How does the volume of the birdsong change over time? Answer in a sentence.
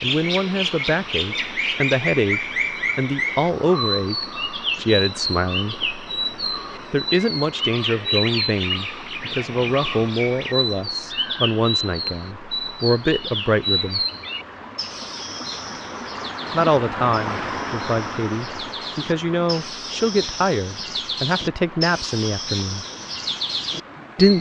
The loudness of the birdsong goes down, then up.